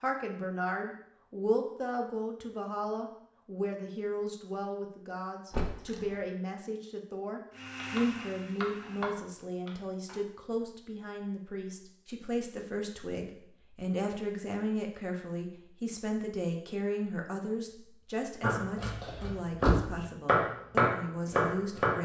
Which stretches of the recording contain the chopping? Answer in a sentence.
The chopping can be heard from 7.7 to 10.2 s and from 18.4 to 22.0 s.